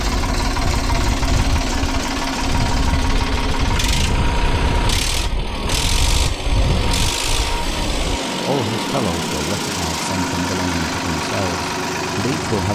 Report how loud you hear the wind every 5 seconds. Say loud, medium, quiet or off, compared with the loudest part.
loud, loud, off.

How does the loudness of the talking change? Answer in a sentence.
The loudness of the talking stays about the same.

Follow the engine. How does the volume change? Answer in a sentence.
The loudness of the engine stays about the same.